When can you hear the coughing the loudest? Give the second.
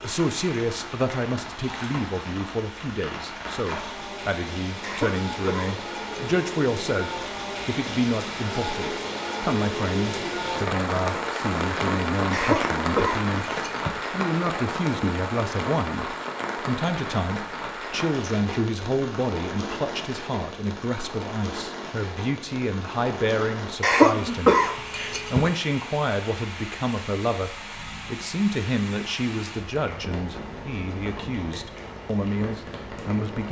24 s.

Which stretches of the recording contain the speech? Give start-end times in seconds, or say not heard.
0.0-13.4, 14.1-24.6, 25.3-33.4.